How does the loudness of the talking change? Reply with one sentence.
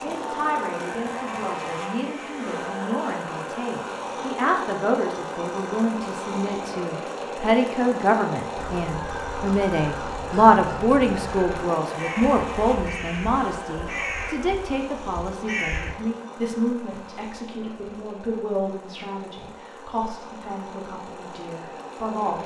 The volume of the talking goes up, then down.